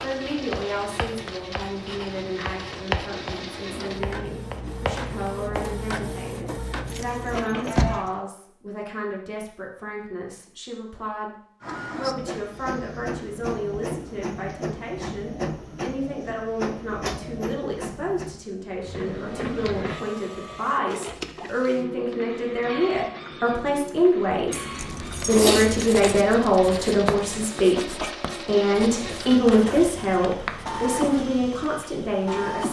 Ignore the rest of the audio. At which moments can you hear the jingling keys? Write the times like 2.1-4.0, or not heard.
6.9-8.1, 24.5-26.2.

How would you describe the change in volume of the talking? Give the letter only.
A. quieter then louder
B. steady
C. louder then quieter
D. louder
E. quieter
D.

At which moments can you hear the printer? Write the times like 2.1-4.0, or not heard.
0.0-8.2, 11.6-32.6.